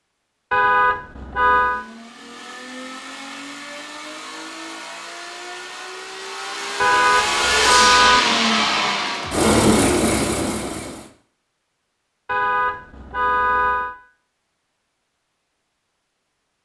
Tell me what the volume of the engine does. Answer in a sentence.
The loudness of the engine goes up.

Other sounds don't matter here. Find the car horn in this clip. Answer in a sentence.
You can hear the car horn from 0.5 to 1.9 s, from 6.8 to 8.2 s and from 12.2 to 13.9 s.